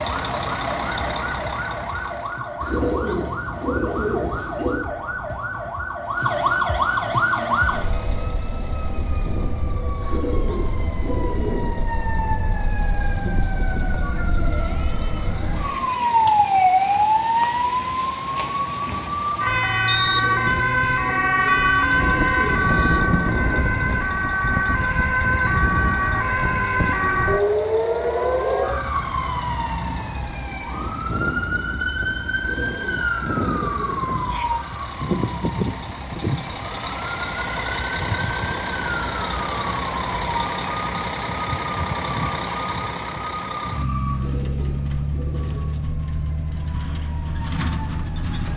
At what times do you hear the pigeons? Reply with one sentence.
The pigeons can be heard from 2.6 to 4.8 s, from 10.0 to 11.7 s, from 20.0 to 22.6 s, from 32.4 to 34.0 s and from 44.1 to 45.7 s.